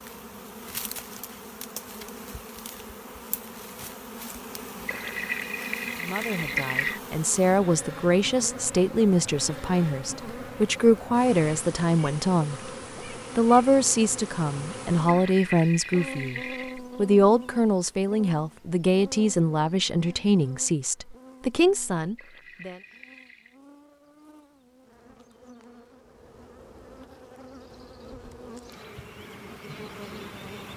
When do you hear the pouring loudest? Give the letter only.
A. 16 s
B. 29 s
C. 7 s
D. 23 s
C.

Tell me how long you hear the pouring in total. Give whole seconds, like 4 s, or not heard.
5 s.